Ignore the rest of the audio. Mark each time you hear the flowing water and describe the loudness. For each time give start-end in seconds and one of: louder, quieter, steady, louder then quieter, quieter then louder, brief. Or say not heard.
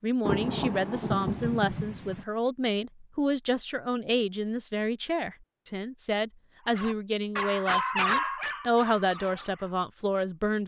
not heard.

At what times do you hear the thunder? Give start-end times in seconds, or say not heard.
0.2-2.2.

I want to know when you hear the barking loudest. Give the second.
8 s.